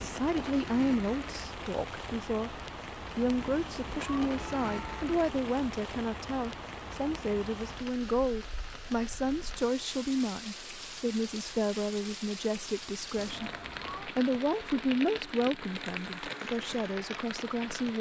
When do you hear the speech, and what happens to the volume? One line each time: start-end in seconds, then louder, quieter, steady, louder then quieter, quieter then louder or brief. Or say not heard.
0.0-2.5 brief
3.1-17.9 steady.